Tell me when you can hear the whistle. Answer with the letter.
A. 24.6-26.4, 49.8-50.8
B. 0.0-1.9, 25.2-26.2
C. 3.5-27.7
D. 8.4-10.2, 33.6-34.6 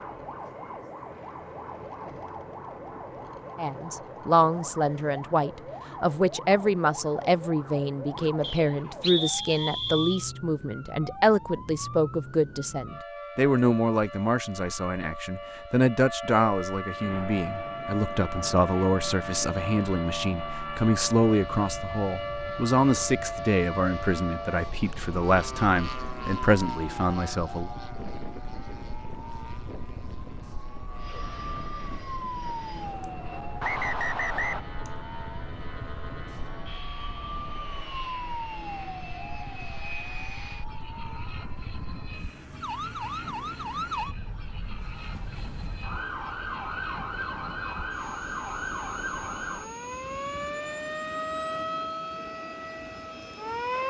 D.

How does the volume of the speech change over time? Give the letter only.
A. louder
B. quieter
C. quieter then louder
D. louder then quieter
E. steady
E.